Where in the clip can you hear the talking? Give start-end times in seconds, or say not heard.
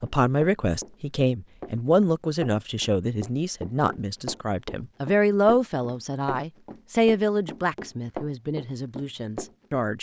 0.0-9.9.